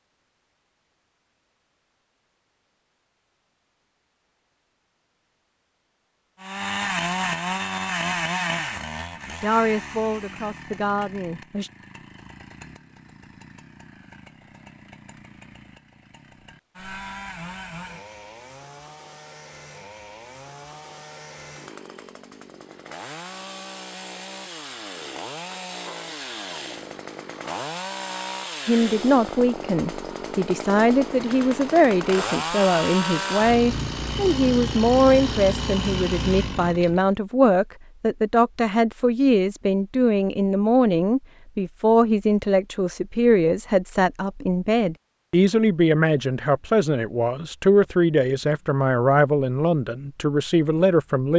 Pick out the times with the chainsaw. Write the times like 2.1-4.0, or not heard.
6.4-37.1.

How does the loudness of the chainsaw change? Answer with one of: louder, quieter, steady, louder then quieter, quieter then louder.
quieter then louder.